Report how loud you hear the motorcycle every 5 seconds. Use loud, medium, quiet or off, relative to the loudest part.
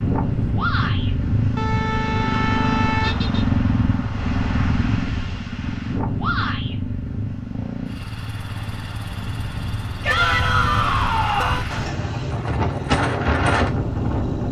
loud, medium, medium.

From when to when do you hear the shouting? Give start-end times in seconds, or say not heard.
0.6-1.1, 6.2-6.8, 10.0-11.7.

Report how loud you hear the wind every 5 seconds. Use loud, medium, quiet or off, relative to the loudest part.
loud, medium, loud.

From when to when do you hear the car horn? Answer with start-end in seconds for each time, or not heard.
1.6-3.5, 10.1-11.7.